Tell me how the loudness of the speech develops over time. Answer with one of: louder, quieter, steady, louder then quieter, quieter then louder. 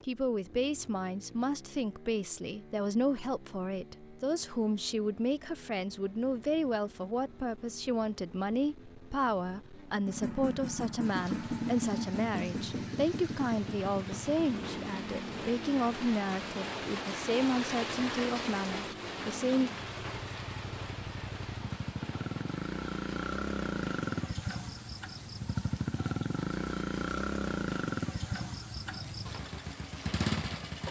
steady.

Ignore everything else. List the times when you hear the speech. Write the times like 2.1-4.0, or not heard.
0.0-19.7.